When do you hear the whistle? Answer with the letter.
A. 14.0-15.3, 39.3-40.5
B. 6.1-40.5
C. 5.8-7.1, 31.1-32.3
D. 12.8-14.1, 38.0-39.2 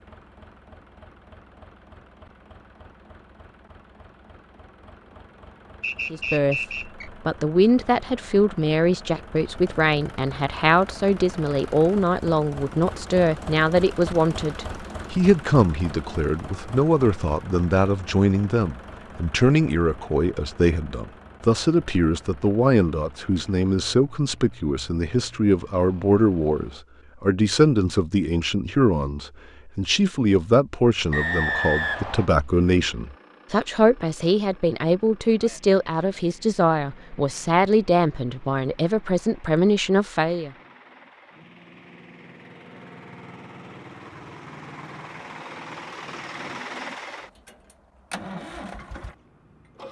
C.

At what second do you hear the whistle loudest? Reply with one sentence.
The volume of the whistle peaks at 32 seconds.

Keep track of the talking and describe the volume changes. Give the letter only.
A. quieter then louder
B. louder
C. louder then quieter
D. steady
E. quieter
D.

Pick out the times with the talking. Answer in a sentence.
The talking can be heard from 6.1 to 40.5 s.